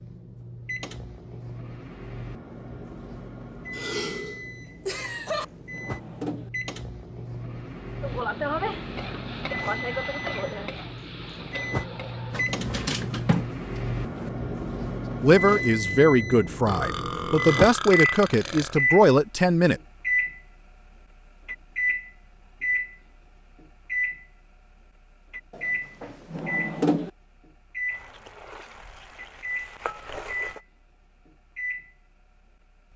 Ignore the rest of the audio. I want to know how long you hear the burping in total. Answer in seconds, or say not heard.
4 s.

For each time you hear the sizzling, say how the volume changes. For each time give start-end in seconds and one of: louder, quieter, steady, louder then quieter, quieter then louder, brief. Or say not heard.
8.0-12.4 quieter
27.9-30.6 brief.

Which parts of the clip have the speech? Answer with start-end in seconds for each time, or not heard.
15.2-19.8.